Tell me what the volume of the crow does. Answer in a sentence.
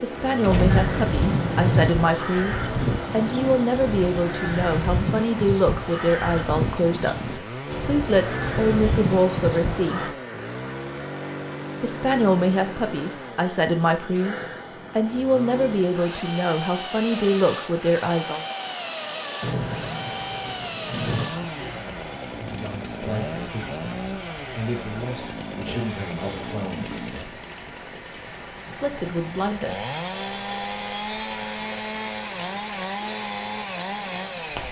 The loudness of the crow stays about the same.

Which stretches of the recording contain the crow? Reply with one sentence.
You can hear the crow from 0.7 to 10.1 s.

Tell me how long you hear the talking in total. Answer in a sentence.
You can hear the talking for 23 seconds altogether.